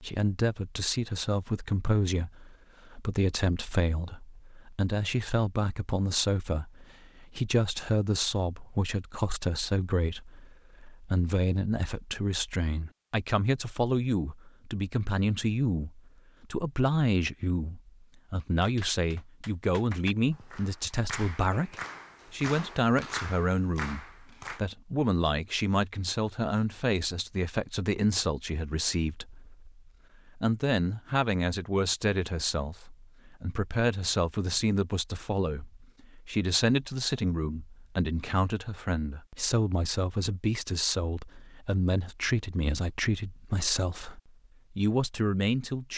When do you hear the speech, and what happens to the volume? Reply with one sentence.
You can hear the speech from 0.0 to 45.9 s, at a steady volume.